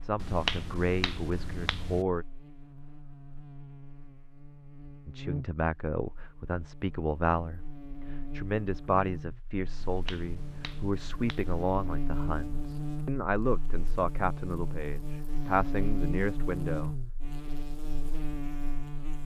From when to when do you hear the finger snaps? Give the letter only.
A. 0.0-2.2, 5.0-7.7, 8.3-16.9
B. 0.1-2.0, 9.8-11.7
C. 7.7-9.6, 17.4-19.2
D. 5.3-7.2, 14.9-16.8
B.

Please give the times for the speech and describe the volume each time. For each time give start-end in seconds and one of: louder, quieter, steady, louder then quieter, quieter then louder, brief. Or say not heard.
0.0-2.2 brief
5.0-7.7 brief
8.3-16.9 steady.